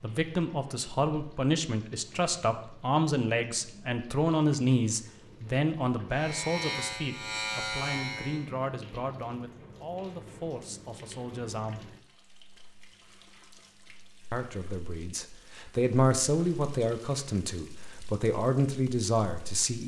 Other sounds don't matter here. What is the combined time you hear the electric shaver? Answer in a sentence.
You can hear the electric shaver for 2 seconds altogether.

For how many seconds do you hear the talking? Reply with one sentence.
You can hear the talking for 17 seconds altogether.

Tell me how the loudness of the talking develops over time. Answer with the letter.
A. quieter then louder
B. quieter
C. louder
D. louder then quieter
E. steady
A.